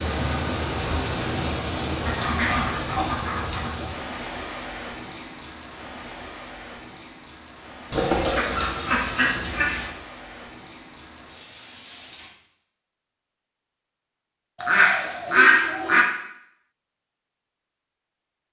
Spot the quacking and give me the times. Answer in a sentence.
The quacking can be heard from 2.0 to 3.7 s, from 7.9 to 9.9 s and from 14.6 to 16.0 s.